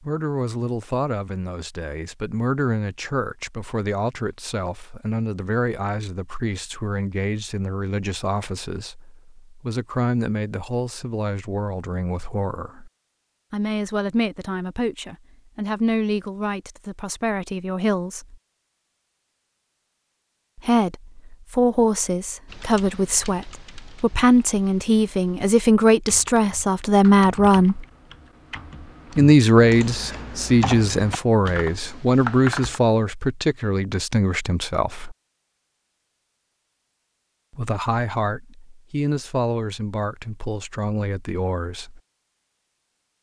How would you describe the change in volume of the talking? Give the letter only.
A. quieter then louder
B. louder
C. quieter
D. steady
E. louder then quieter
E.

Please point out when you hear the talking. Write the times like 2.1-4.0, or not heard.
0.0-12.9, 13.5-18.4, 20.6-27.9, 29.1-35.1, 37.5-42.0.